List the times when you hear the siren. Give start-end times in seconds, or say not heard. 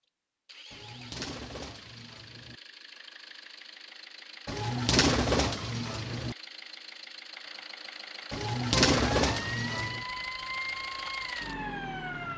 8.9-12.3.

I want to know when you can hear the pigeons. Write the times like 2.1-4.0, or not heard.
0.7-2.6, 4.5-6.3, 8.3-10.1.